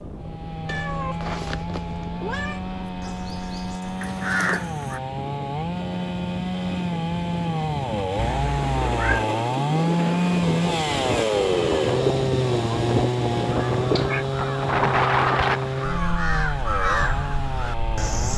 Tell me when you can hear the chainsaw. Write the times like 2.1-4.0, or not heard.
0.0-18.3.